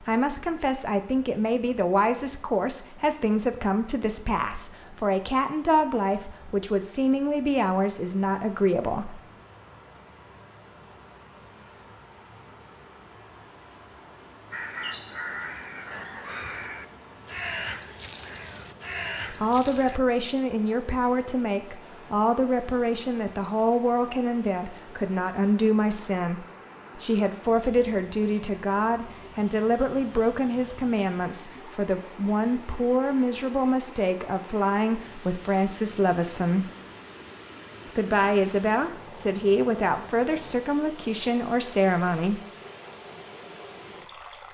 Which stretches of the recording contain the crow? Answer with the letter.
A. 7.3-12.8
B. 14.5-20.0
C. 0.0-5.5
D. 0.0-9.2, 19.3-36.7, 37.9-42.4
B.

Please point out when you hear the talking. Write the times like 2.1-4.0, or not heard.
0.0-9.2, 19.3-36.7, 37.9-42.4.